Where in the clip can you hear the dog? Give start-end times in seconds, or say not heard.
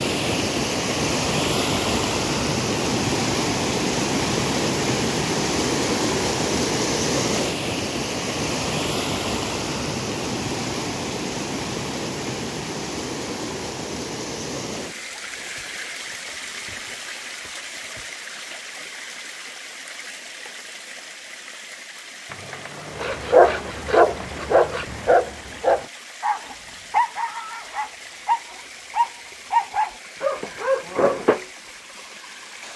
23.0-31.4.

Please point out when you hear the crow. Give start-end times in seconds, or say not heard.
not heard.